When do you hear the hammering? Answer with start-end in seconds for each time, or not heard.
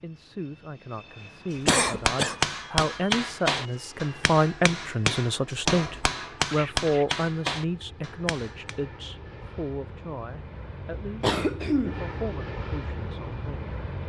1.6-8.8.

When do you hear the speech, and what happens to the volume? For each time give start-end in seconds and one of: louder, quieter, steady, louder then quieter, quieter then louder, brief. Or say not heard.
0.0-13.8 louder then quieter.